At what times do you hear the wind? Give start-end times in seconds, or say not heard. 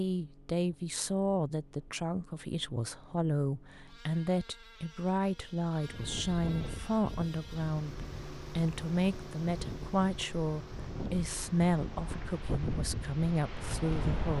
5.8-14.3.